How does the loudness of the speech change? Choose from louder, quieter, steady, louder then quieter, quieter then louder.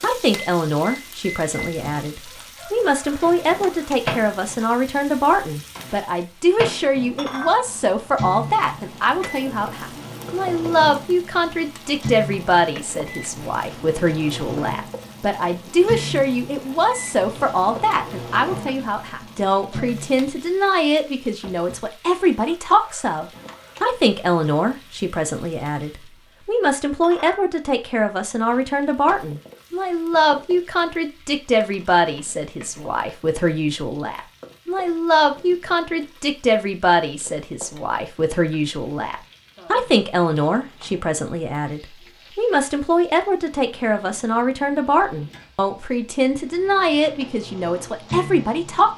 steady.